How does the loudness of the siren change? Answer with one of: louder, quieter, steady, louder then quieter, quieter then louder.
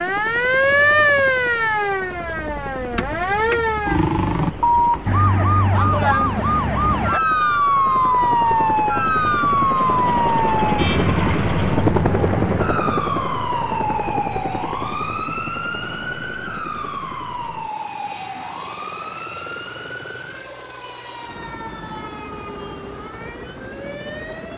quieter.